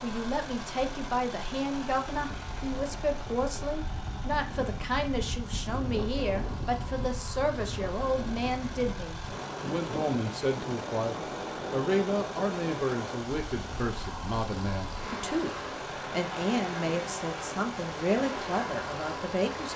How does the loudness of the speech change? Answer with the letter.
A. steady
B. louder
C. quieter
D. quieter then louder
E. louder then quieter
A.